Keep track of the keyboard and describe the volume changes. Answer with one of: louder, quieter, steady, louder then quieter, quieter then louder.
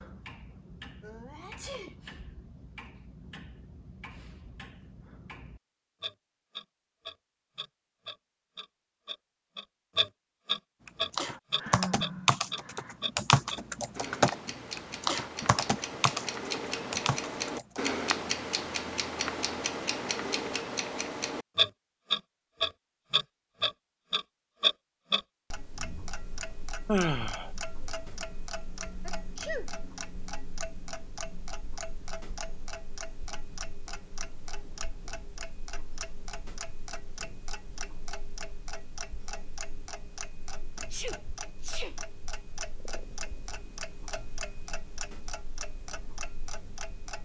quieter.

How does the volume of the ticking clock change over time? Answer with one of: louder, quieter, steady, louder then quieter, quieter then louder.
louder then quieter.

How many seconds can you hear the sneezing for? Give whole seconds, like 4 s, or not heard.
3 s.